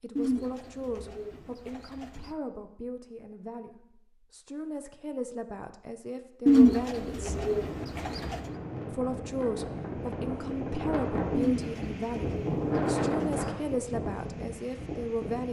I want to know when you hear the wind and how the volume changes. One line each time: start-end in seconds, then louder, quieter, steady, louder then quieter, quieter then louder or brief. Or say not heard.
7.2-15.4 louder then quieter.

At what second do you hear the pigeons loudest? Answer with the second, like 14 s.
7 s.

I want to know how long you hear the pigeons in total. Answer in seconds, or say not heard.
6 s.